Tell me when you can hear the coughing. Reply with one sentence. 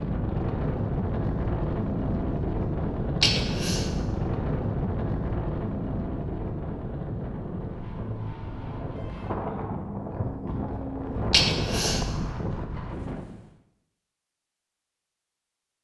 You can hear the coughing from 3.2 to 3.9 s and from 11.3 to 12.1 s.